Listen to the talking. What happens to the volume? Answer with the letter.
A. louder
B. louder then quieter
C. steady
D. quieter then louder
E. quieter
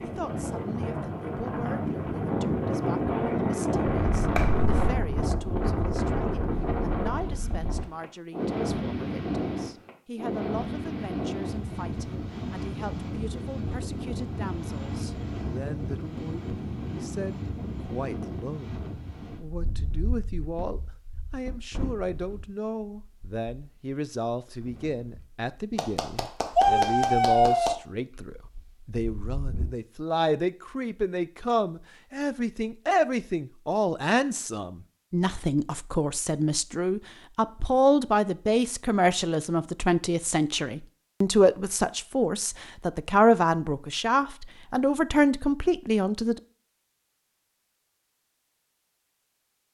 A.